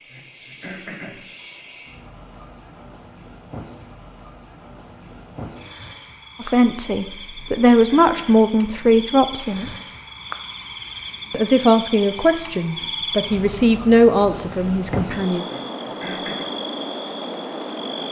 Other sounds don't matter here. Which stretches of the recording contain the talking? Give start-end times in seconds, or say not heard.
6.4-9.7, 11.3-15.4.